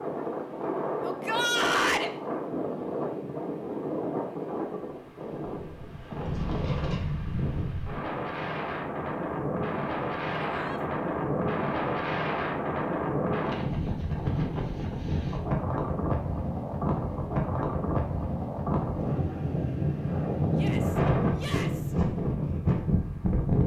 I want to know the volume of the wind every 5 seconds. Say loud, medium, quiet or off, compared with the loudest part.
medium, medium, loud, loud, loud.